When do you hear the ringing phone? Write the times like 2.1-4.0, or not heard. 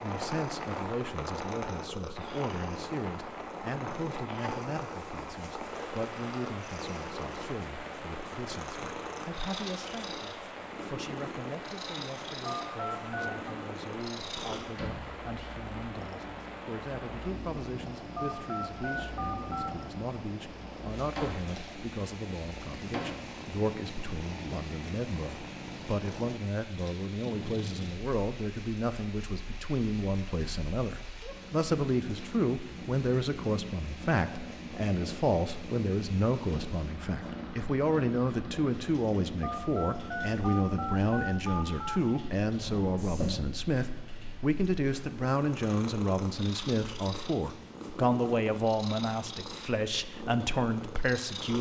12.4-13.6, 18.1-19.7, 39.4-42.0.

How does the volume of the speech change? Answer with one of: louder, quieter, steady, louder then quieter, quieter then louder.
louder.